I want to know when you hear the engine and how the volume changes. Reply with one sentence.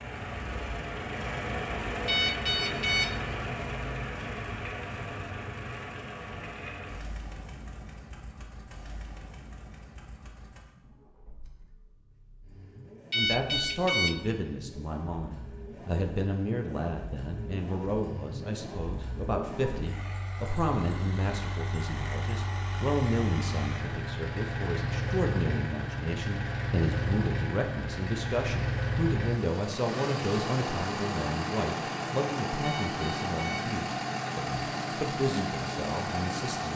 The engine can be heard from 0.0 to 36.7 s, getting quieter then louder.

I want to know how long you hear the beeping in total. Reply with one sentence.
You can hear the beeping for 3 seconds altogether.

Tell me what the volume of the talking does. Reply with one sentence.
The volume of the talking stays about the same.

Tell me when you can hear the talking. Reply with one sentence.
You can hear the talking from 13.2 to 36.7 s.